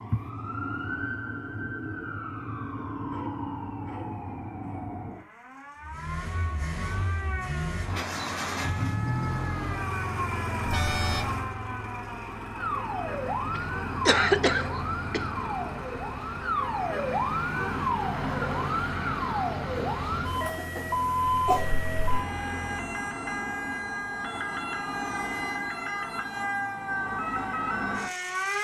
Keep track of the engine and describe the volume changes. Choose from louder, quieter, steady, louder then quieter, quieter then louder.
quieter.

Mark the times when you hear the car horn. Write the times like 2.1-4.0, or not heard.
10.7-11.3.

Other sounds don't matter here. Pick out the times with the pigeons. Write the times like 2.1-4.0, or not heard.
not heard.